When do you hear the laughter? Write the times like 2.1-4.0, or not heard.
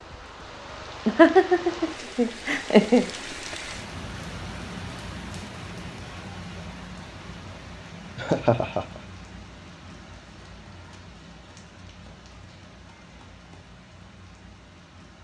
1.1-3.0, 8.2-9.0.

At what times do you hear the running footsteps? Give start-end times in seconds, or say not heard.
not heard.